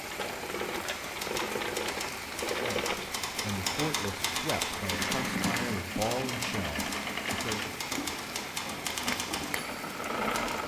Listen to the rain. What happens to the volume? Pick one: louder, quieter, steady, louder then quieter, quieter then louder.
steady.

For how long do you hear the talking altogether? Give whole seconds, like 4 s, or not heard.
5 s.